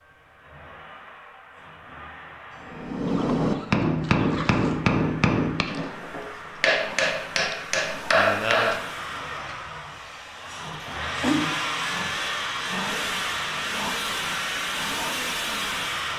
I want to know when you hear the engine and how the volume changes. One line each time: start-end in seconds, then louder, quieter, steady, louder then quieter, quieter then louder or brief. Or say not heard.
0.0-16.1 louder.